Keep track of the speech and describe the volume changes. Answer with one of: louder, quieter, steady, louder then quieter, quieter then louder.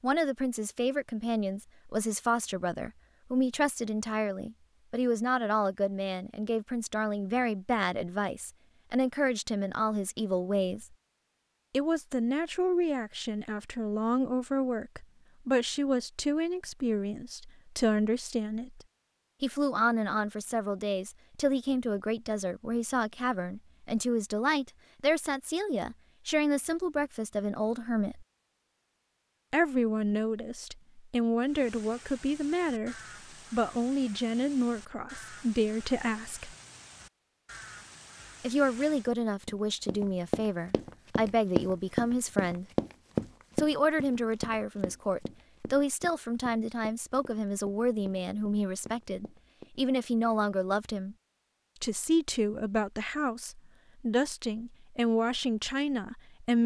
steady.